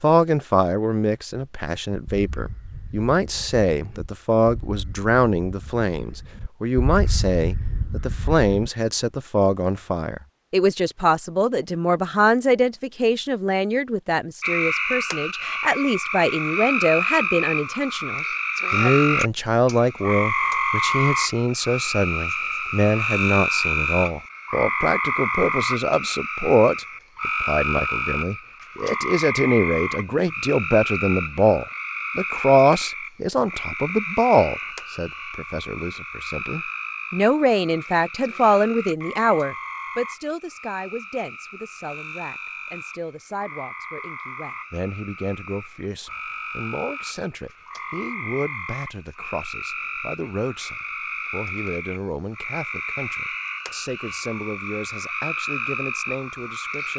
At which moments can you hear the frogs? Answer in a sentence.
You can hear the frogs from 14.4 to 56.9 s.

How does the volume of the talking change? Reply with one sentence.
The loudness of the talking goes down.